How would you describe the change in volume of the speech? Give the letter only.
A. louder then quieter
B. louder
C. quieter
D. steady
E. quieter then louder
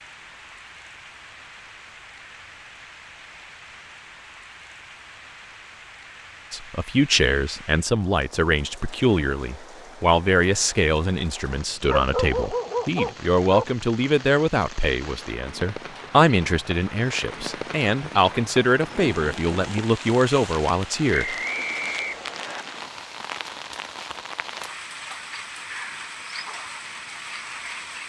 D.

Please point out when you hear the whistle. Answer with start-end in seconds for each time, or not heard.
21.1-22.6.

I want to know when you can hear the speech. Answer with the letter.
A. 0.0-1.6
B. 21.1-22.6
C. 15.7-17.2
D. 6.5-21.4
D.